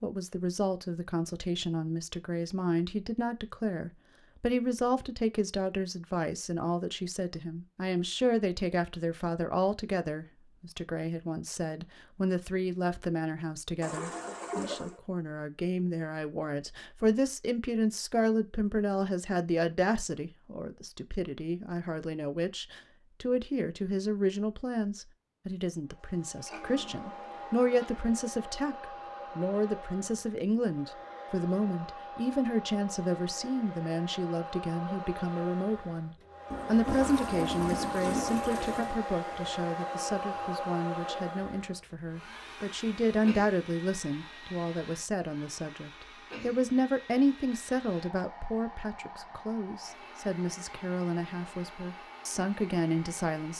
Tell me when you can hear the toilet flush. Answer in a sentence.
You can hear the toilet flush from 13.8 to 15.0 s, from 26.2 to 28.1 s and from 36.5 to 39.0 s.